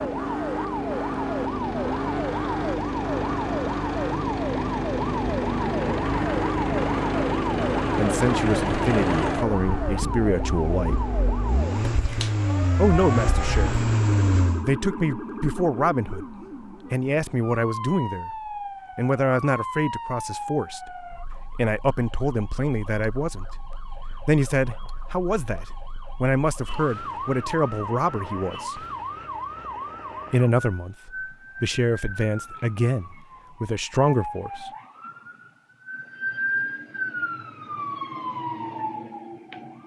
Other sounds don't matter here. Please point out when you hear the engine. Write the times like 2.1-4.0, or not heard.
0.0-14.7.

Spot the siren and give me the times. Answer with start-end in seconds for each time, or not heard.
0.0-39.8.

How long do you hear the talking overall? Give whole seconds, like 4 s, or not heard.
22 s.